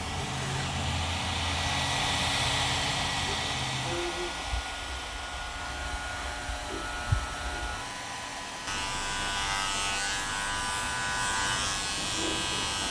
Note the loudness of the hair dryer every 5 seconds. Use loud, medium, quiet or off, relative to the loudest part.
loud, medium, medium.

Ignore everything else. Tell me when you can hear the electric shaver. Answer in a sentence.
You can hear the electric shaver from 0.0 to 12.8 s.